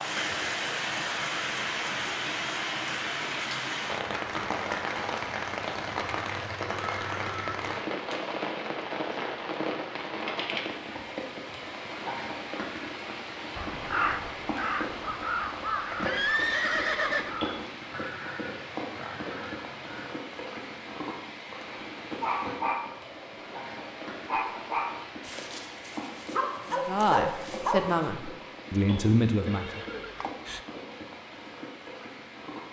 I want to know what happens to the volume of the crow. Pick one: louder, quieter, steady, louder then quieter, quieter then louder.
quieter.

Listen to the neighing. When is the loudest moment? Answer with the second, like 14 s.
16 s.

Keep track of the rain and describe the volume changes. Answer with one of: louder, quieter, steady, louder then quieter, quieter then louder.
quieter.